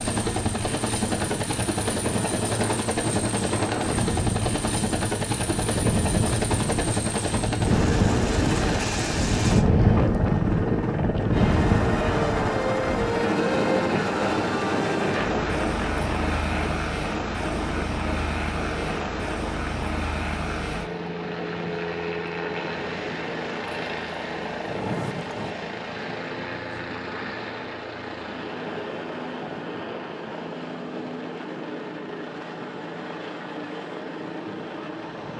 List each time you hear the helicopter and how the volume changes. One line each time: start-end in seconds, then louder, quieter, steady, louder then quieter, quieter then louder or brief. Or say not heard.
0.0-35.3 quieter.